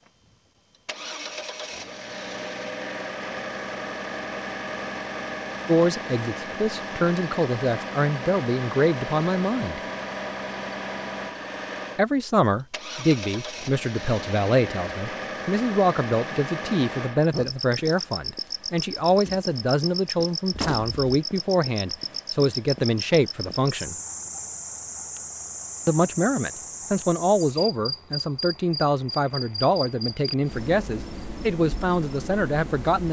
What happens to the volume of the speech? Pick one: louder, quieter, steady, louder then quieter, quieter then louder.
steady.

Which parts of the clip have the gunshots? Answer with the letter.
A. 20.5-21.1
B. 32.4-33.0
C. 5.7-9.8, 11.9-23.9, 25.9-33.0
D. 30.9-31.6
A.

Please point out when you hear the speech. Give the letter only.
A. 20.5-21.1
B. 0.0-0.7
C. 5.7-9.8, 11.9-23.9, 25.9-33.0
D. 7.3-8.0
C.